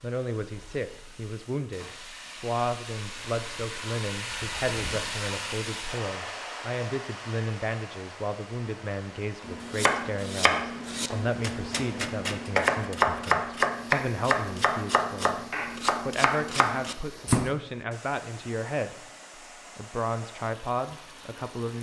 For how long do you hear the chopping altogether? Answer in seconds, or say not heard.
8 s.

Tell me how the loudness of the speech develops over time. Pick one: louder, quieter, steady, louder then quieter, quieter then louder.
steady.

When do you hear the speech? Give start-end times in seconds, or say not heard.
0.0-21.7.